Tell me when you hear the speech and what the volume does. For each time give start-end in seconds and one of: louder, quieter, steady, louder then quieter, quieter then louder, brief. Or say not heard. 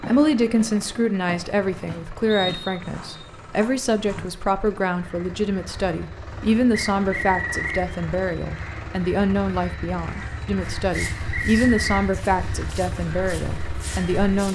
0.1-14.5 steady.